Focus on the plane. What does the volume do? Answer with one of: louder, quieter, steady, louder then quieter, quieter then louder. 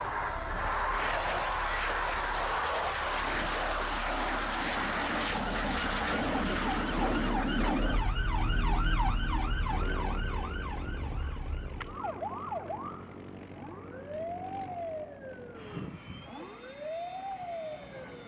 quieter.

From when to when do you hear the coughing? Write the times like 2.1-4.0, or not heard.
not heard.